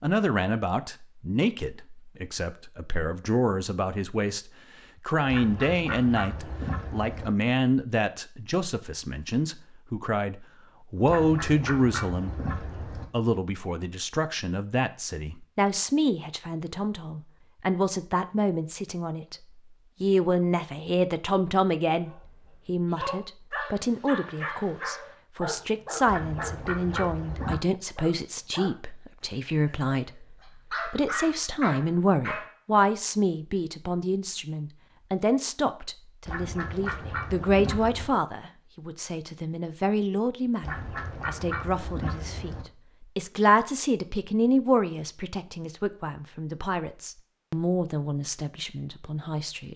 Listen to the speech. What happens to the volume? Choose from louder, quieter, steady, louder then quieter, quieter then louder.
steady.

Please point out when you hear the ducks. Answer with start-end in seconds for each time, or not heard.
5.2-7.3, 11.1-13.1, 26.1-27.6, 36.2-38.1, 40.6-42.6.